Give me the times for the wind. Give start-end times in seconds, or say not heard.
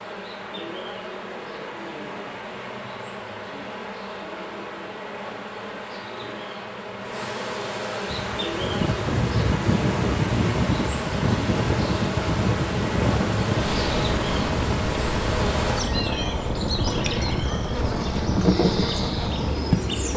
8.1-20.1.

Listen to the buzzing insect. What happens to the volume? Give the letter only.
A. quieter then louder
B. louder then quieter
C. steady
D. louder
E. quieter
D.